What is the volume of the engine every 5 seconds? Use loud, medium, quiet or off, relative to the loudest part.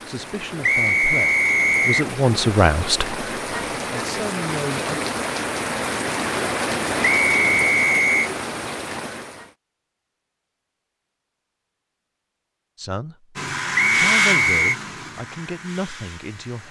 off, off, loud, quiet.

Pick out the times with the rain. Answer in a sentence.
You can hear the rain from 0.0 to 9.6 s.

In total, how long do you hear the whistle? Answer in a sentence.
The whistle can be heard for 4 seconds in total.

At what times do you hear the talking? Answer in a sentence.
You can hear the talking from 0.1 to 5.0 s and from 12.8 to 16.6 s.